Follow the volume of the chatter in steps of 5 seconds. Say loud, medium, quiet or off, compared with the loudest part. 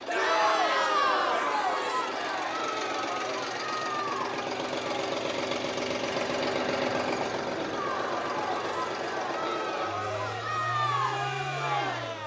loud, medium, loud.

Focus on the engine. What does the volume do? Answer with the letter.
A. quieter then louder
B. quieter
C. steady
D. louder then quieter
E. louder
D.